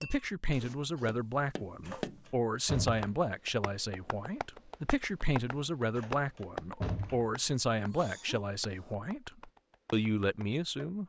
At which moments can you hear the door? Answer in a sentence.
The door can be heard from 1.8 to 3.0 s and from 6.0 to 7.3 s.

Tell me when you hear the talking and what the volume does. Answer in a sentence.
The talking can be heard from 0.0 to 11.0 s, at a steady volume.